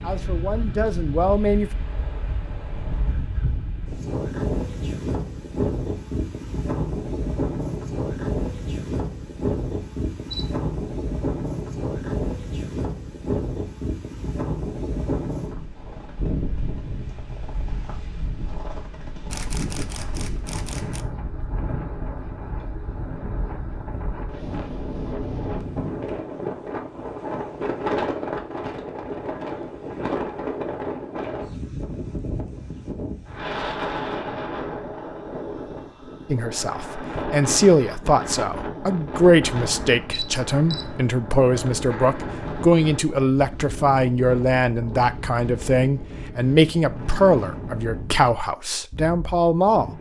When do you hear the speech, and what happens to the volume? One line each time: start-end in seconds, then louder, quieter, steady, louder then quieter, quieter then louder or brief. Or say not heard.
0.0-1.7 brief
36.2-49.9 steady.